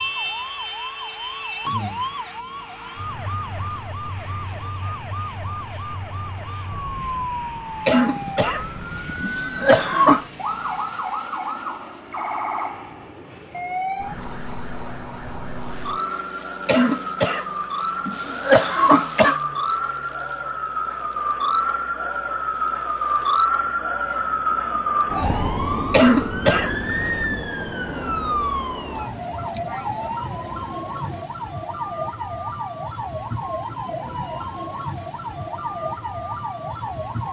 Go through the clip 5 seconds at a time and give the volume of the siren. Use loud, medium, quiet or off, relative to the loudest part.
medium, medium, medium, medium, loud, loud, medium, medium.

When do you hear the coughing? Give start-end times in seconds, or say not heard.
7.8-10.2, 16.6-17.4, 18.1-19.4, 25.9-27.4.